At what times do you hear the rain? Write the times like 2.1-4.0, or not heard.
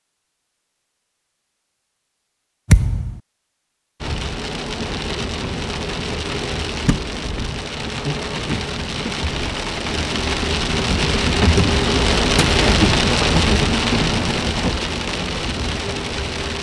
4.0-16.5.